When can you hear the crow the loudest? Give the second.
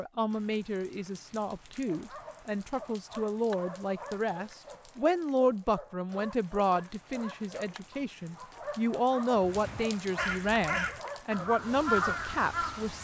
12 s.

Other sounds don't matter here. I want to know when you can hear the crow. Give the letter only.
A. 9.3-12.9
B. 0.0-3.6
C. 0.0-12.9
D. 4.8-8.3
A.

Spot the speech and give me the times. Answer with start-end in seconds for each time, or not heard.
0.0-12.9.